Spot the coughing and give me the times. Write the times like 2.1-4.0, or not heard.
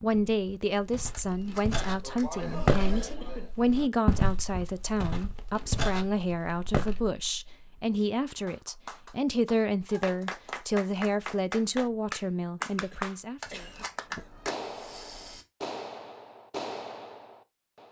2.0-3.5, 12.8-14.3.